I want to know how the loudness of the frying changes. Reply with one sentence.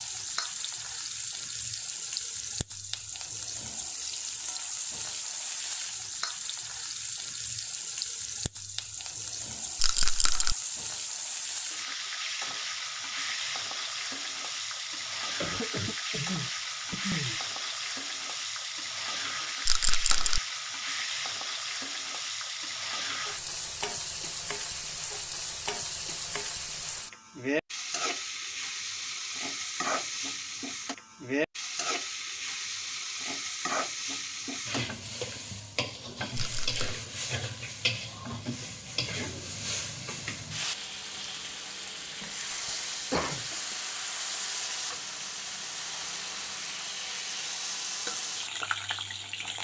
The volume of the frying stays about the same.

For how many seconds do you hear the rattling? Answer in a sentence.
The rattling can be heard for 2 seconds in total.